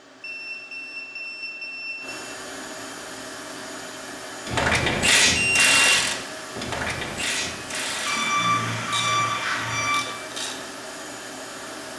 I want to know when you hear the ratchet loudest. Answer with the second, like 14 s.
5 s.